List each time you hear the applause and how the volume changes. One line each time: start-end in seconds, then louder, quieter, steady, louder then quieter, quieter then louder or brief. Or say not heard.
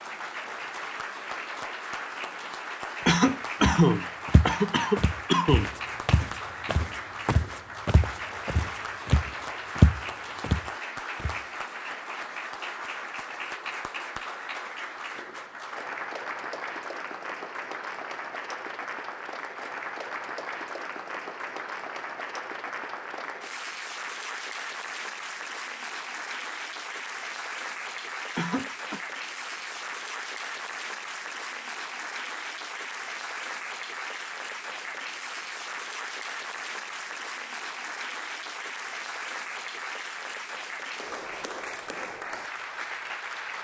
0.0-43.5 steady.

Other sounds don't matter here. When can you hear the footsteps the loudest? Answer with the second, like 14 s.
10 s.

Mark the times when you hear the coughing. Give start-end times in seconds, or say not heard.
3.0-5.7, 28.4-29.0.